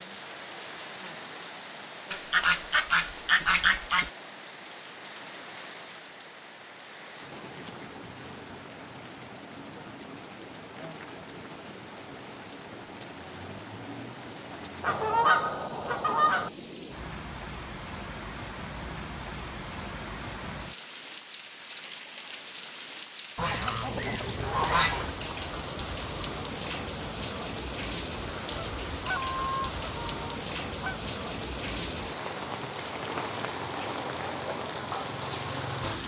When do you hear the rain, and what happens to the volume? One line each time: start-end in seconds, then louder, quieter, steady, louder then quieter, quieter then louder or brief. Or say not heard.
0.0-36.0 louder.